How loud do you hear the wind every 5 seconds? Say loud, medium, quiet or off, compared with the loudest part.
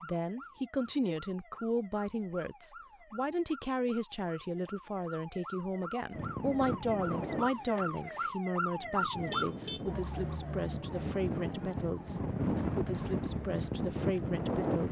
off, medium, loud.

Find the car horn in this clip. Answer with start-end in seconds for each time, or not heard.
9.2-9.8.